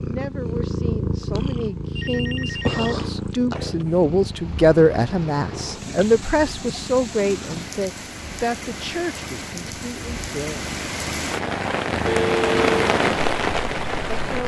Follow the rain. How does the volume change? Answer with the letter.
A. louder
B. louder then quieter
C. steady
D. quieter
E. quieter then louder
A.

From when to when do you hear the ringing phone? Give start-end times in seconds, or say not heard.
1.9-3.9, 12.1-12.8.